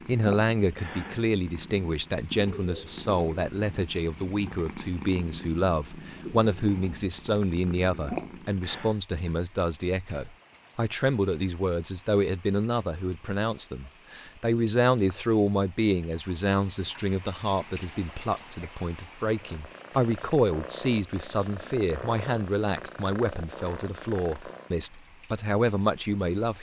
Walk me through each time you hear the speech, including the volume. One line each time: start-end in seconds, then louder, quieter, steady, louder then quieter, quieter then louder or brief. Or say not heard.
0.1-26.5 steady.